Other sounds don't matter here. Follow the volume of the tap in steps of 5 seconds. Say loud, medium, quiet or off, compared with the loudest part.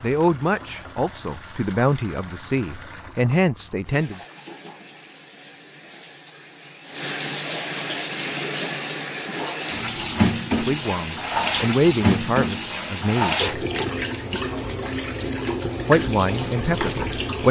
quiet, medium, loud, loud.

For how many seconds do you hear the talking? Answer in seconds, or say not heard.
9 s.